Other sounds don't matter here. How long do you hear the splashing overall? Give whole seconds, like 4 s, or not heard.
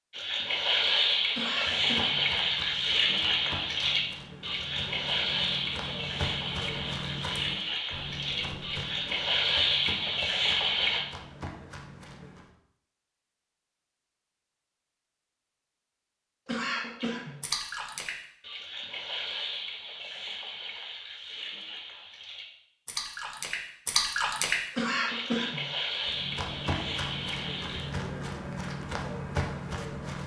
22 s.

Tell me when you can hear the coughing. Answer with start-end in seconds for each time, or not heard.
1.4-2.3, 16.4-17.4, 24.8-25.8.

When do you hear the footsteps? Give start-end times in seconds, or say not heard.
1.6-12.5, 26.1-30.2.